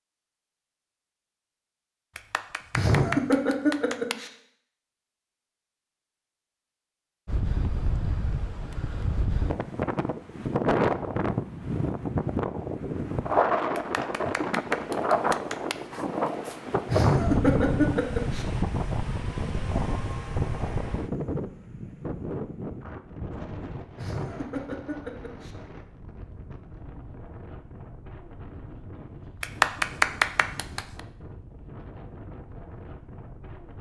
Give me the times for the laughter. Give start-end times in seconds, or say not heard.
2.7-4.3, 16.9-18.4, 23.9-25.5.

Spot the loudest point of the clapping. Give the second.
30 s.